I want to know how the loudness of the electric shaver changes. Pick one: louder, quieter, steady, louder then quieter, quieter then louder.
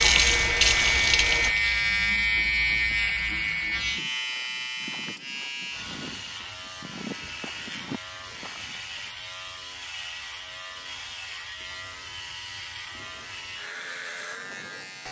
quieter.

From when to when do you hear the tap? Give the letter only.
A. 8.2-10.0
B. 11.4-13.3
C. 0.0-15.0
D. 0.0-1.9
D.